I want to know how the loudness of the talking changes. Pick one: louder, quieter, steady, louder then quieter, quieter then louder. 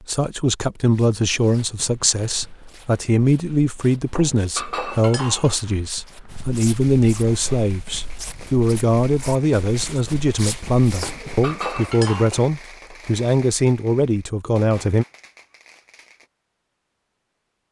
steady.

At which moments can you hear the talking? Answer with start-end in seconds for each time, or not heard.
0.1-15.1.